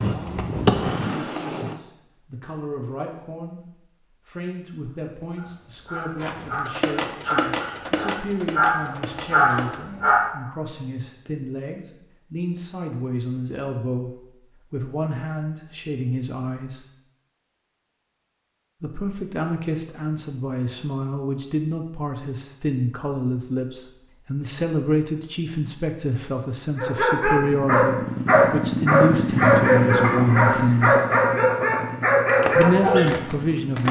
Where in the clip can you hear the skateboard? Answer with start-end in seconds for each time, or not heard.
0.0-1.8, 6.2-9.8, 32.2-33.8.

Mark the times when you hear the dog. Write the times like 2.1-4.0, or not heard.
5.3-10.2, 26.8-33.1.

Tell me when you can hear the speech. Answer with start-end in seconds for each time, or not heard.
0.0-16.9, 18.8-30.9, 32.5-33.8.